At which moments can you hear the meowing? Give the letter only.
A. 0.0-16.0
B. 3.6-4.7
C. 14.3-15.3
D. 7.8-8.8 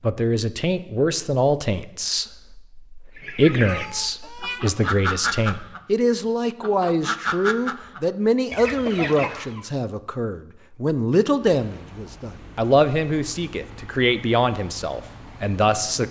B.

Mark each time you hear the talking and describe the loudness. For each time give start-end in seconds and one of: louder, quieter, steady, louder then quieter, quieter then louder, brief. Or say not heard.
0.0-16.0 steady.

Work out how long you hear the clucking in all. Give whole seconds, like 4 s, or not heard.
6 s.